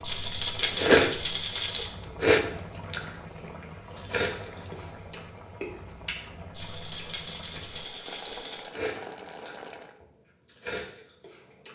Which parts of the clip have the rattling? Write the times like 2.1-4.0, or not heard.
0.0-1.9, 6.5-8.7.